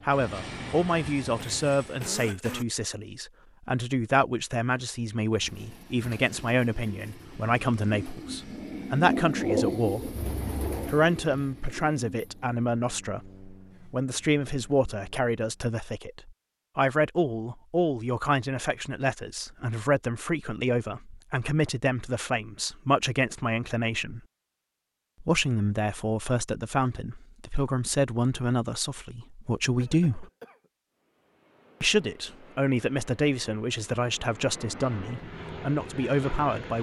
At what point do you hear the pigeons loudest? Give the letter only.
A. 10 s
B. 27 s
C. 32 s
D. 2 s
A.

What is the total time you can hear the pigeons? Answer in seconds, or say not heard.
7 s.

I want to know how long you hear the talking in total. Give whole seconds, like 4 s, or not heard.
33 s.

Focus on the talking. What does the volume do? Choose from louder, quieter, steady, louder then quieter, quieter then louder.
steady.